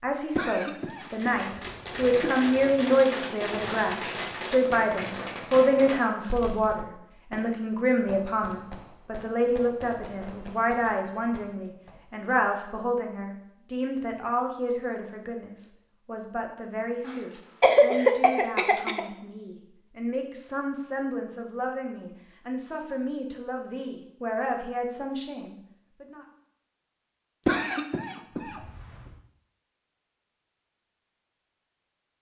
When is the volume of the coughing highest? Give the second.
18 s.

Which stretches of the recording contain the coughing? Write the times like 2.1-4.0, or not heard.
0.3-2.4, 17.1-19.1, 27.4-28.9.